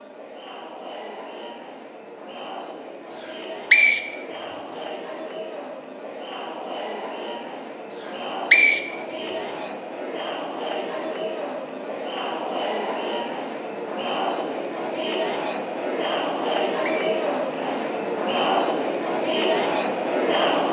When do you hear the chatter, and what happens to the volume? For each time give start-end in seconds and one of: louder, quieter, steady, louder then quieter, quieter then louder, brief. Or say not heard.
0.0-20.6 louder.